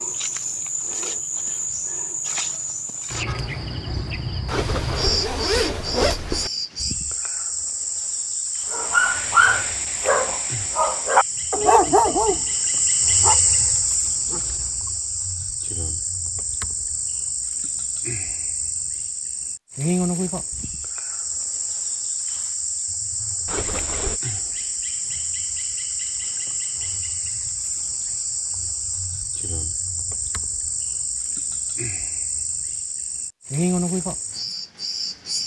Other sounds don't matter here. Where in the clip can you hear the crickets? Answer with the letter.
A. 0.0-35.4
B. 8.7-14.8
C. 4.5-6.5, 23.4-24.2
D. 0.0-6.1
A.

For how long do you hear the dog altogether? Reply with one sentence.
The dog can be heard for 6 seconds in total.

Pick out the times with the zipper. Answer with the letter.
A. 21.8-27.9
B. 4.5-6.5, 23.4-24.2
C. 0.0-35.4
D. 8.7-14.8
B.